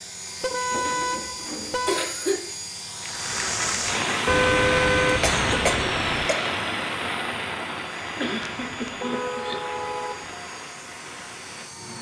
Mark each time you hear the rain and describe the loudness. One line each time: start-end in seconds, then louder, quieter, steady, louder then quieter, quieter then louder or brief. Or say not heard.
3.0-11.9 quieter.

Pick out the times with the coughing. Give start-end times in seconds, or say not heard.
0.7-2.5, 5.0-6.3, 8.2-9.8.